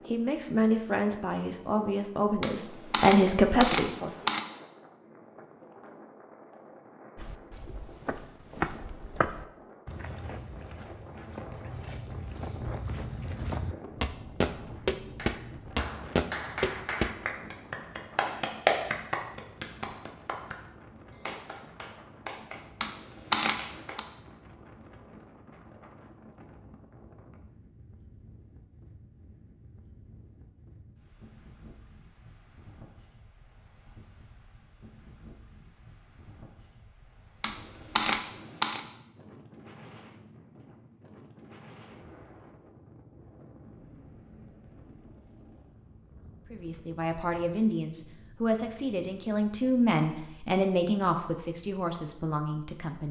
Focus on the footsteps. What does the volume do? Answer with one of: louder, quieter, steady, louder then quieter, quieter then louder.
quieter then louder.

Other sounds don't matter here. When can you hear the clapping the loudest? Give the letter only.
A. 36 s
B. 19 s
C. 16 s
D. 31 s
B.